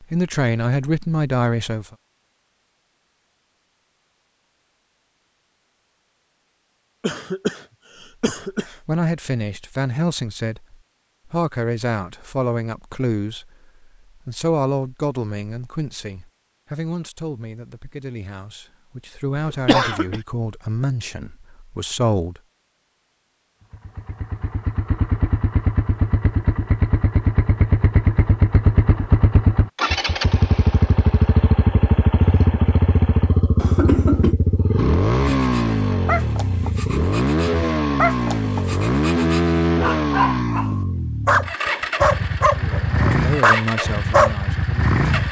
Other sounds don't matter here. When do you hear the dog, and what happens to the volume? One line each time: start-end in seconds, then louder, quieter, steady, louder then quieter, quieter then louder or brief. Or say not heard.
35.2-44.4 louder.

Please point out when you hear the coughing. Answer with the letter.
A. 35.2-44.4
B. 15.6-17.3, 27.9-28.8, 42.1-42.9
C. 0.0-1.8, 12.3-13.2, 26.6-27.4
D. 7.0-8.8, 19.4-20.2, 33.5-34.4
D.